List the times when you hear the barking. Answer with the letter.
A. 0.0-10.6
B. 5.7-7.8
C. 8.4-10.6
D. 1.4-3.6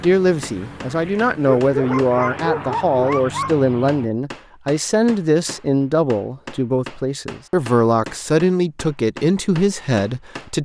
D.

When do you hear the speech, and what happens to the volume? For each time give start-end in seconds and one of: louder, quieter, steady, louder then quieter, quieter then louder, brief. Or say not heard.
0.0-10.6 steady.